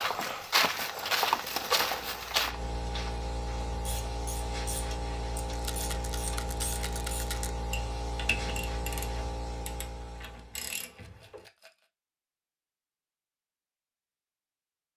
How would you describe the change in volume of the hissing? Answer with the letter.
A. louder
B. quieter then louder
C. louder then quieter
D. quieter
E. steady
E.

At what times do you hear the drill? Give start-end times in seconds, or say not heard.
not heard.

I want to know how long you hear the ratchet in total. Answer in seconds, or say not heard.
8 s.